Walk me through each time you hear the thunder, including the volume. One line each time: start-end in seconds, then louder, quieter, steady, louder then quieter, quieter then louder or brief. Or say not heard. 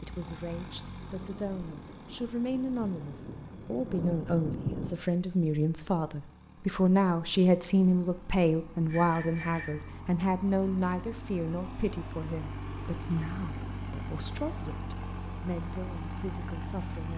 1.0-5.0 louder.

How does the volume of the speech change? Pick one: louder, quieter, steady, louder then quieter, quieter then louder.
louder then quieter.